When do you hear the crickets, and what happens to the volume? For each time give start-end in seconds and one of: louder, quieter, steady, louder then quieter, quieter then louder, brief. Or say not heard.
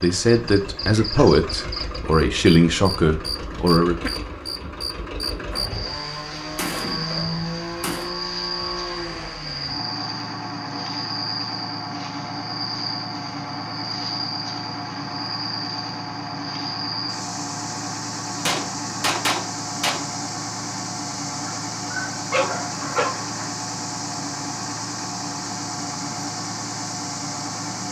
0.1-27.8 steady.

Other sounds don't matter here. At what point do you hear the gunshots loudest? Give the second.
19 s.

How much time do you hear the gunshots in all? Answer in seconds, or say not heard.
4 s.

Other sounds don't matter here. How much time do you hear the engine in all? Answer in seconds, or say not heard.
28 s.